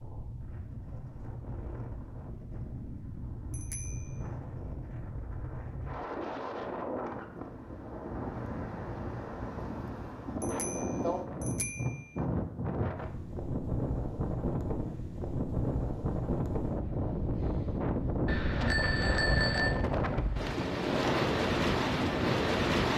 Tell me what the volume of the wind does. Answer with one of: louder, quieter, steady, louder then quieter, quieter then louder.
louder.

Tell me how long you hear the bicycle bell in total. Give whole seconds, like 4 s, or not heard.
4 s.